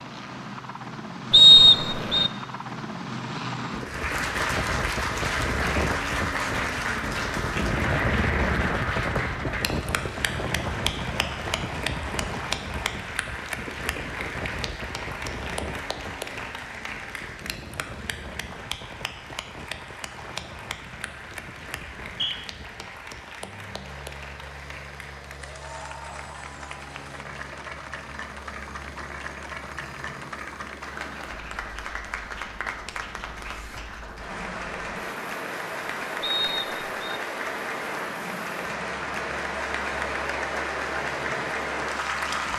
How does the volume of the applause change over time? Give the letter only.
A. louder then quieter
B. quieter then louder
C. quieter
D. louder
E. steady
B.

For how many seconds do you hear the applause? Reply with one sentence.
The applause can be heard for 39 seconds in total.